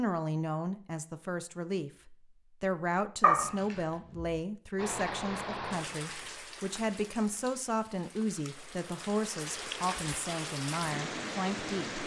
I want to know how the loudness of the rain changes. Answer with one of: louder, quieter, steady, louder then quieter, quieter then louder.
quieter then louder.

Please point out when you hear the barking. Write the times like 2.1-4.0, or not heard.
3.2-4.3.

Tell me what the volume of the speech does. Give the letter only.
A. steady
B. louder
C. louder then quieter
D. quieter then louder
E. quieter
A.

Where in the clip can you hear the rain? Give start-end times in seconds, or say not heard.
4.8-12.0.